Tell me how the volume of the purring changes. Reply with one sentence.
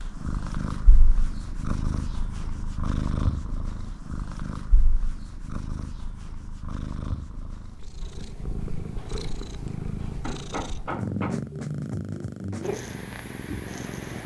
The loudness of the purring goes down, then up.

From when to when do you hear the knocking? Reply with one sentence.
You can hear the knocking from 10.2 to 11.4 s.